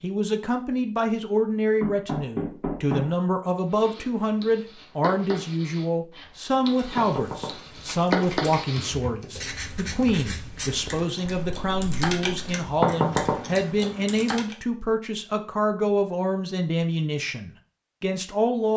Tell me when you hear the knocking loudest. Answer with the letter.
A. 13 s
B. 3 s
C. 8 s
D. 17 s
A.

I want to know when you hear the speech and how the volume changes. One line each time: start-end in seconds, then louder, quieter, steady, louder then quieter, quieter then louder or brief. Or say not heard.
0.0-18.7 steady.